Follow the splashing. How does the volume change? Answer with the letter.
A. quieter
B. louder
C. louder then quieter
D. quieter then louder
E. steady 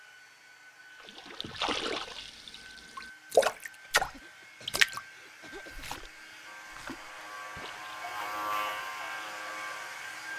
C.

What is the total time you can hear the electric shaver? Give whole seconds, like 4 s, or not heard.
4 s.